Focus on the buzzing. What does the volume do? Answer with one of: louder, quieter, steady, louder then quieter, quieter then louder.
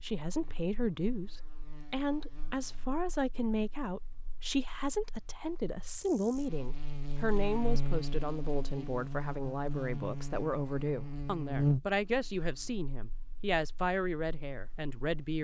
quieter then louder.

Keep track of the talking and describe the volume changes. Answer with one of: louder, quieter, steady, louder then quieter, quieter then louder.
steady.